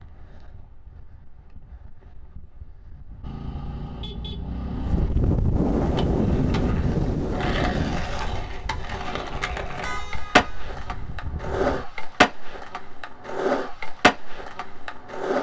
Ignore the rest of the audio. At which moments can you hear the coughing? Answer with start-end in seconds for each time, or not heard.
not heard.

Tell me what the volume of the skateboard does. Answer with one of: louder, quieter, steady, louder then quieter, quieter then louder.
louder.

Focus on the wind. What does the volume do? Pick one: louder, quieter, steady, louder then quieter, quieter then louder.
louder then quieter.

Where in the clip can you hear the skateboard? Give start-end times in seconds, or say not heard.
5.7-15.3.